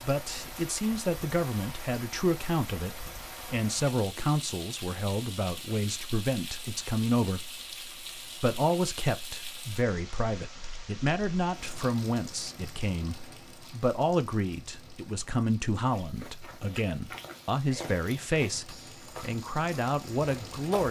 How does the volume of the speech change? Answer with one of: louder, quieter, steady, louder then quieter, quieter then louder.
steady.